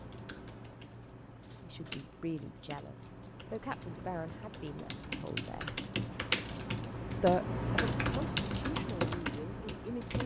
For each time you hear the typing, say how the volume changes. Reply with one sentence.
You can hear the typing from 0.0 to 10.2 s, getting louder.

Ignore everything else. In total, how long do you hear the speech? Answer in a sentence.
The speech can be heard for 7 seconds in total.